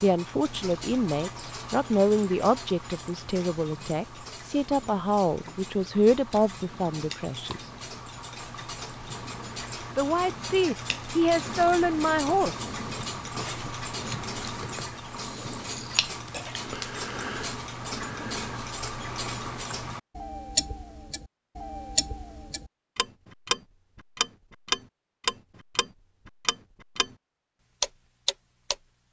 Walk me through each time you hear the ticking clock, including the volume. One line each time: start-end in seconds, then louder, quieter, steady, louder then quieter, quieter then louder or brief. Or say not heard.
0.0-27.1 louder
27.8-28.8 brief.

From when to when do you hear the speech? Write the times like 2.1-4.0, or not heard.
0.0-7.7, 9.9-12.7.